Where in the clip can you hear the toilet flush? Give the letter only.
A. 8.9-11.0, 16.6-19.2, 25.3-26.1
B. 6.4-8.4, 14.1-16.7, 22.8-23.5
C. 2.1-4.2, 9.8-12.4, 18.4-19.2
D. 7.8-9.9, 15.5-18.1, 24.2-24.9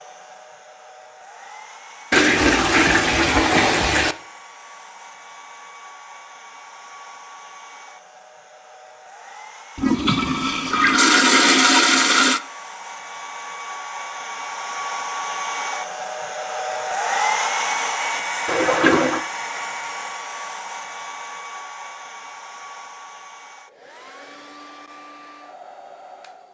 C.